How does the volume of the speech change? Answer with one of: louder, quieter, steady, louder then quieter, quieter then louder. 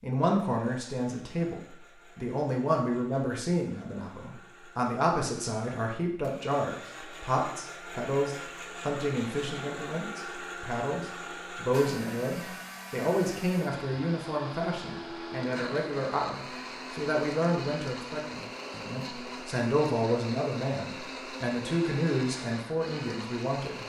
steady.